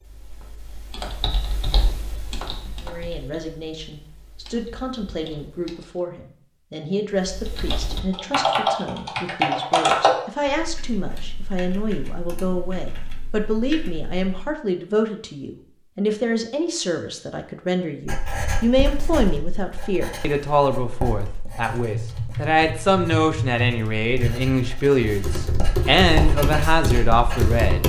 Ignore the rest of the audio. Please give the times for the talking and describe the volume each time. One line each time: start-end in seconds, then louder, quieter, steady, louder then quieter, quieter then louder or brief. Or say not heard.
2.8-27.8 louder.